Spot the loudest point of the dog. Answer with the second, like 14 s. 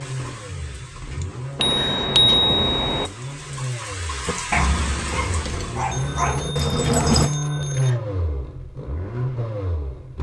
7 s.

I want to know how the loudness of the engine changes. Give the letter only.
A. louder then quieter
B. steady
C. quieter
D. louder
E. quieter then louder
D.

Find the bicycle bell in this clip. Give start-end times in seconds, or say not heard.
1.6-3.1, 5.9-8.0.